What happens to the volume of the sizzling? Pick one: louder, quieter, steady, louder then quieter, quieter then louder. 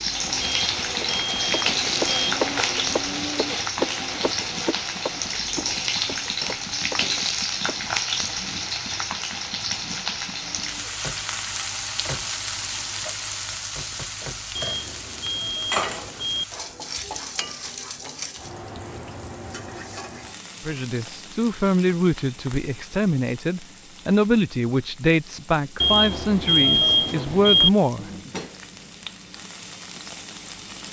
quieter.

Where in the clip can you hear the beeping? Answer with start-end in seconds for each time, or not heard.
0.4-2.4, 14.6-16.4, 25.8-27.7.